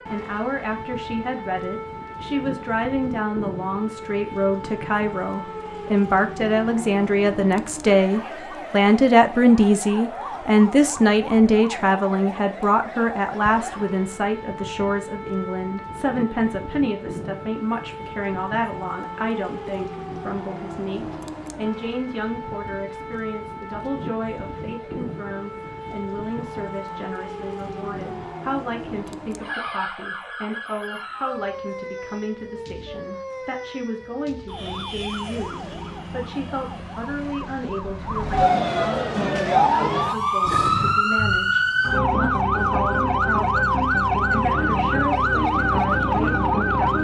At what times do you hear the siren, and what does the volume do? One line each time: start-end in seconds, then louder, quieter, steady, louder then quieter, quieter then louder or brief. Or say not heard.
0.0-46.9 louder.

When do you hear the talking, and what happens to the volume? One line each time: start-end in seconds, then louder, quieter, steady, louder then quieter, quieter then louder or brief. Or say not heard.
0.1-46.9 quieter.